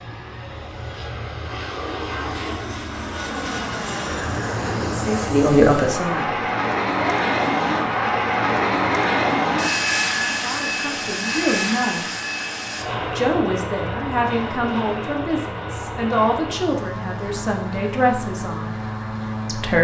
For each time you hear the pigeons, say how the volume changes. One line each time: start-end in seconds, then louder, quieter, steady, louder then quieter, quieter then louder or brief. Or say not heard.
not heard.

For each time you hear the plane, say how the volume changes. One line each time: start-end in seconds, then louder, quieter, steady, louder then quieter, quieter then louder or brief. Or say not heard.
0.0-19.7 louder then quieter.